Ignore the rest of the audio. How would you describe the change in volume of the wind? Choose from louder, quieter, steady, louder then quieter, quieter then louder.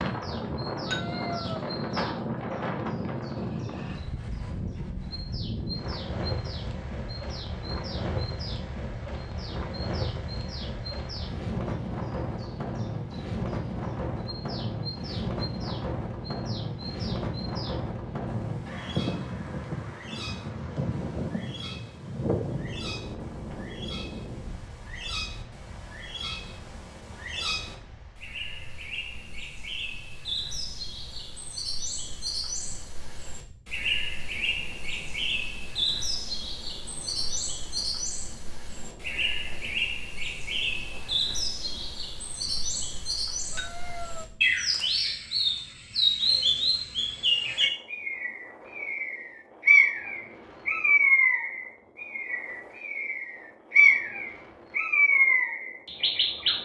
quieter.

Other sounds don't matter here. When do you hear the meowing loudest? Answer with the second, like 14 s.
1 s.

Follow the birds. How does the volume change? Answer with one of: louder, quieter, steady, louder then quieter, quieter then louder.
louder.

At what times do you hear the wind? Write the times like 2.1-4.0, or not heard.
0.0-56.5.